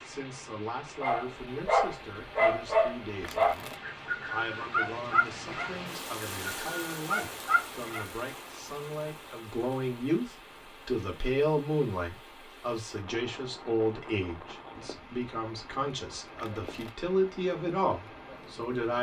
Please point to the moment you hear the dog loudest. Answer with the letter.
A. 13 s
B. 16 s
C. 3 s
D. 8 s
C.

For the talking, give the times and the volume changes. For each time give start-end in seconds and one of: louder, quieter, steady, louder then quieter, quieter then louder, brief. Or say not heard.
0.0-18.9 louder.